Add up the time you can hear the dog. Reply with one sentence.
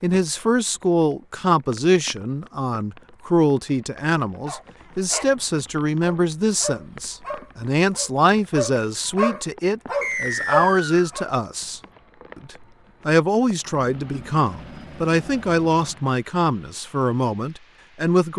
The dog can be heard for 6 seconds in total.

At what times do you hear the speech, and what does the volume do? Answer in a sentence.
You can hear the speech from 0.0 to 18.3 s, at a steady volume.